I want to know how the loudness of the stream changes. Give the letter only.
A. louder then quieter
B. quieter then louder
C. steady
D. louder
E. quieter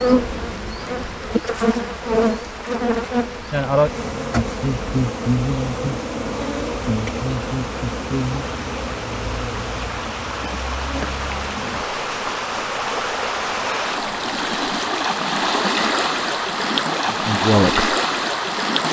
D.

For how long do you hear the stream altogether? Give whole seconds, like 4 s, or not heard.
19 s.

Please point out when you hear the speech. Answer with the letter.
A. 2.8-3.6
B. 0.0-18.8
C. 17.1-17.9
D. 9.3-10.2
C.